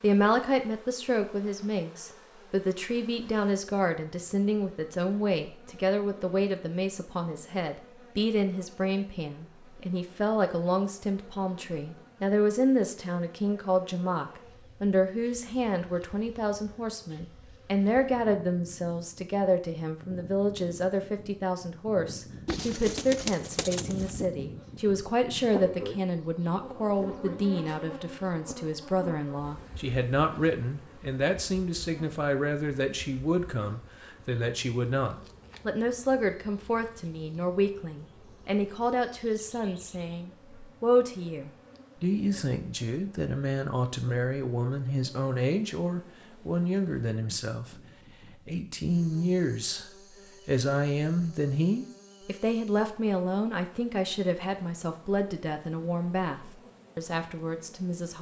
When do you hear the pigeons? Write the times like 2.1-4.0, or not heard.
22.4-24.2.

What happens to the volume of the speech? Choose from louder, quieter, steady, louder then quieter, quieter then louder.
steady.